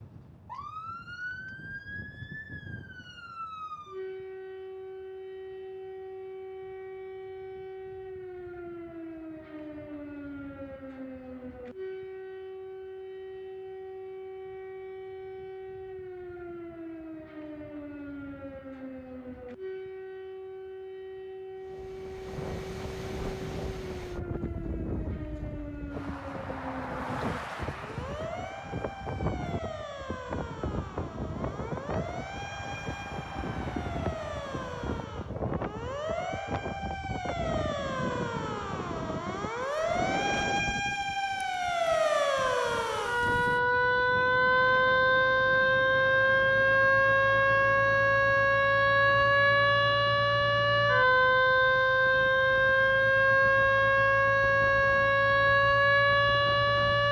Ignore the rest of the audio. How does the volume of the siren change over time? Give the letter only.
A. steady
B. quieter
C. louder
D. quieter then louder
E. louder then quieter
C.